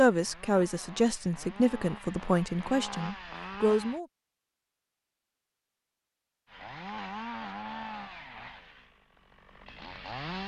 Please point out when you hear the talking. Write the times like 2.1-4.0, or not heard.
0.0-4.0.